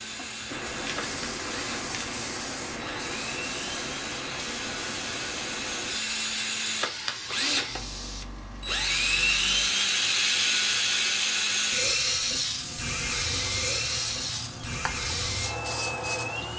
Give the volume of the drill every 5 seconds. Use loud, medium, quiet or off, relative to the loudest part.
medium, loud, loud, medium.